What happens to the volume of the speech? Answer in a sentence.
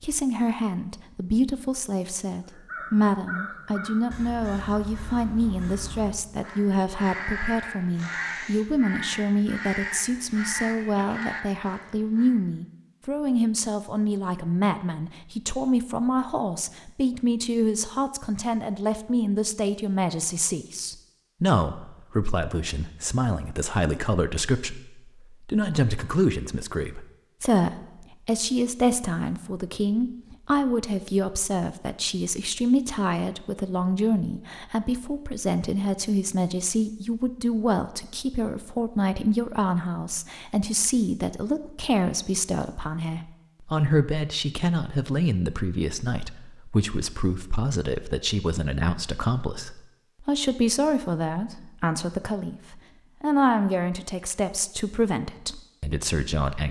The volume of the speech stays about the same.